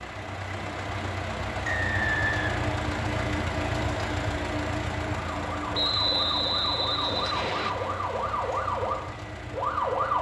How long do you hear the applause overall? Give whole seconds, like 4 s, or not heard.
not heard.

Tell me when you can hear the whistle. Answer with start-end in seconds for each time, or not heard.
1.6-2.7, 5.7-7.7.